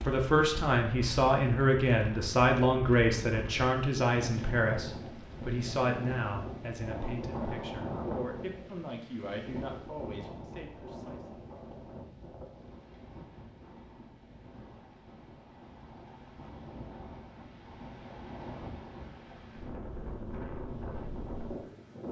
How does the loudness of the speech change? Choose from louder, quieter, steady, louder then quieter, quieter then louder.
quieter.